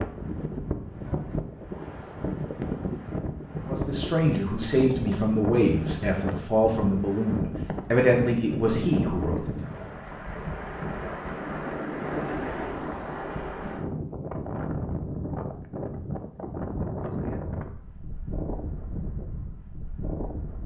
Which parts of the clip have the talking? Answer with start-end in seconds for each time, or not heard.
3.6-9.7.